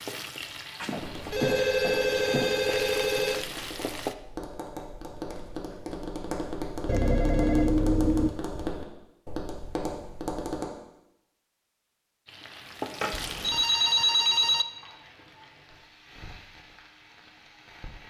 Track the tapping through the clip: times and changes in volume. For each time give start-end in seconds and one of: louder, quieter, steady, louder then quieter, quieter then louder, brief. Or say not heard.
0.9-10.7 louder.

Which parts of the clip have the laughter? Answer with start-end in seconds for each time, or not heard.
not heard.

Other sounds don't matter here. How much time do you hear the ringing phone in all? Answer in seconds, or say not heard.
6 s.